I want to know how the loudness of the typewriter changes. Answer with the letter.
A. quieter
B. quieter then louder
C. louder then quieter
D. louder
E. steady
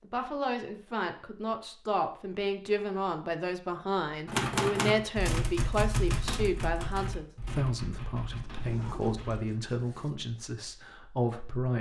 A.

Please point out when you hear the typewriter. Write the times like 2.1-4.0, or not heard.
4.2-9.4.